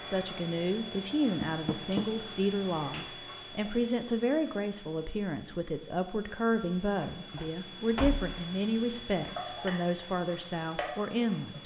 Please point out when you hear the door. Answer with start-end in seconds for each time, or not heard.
1.4-2.0, 6.5-8.4.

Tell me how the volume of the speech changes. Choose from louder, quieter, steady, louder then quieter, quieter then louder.
steady.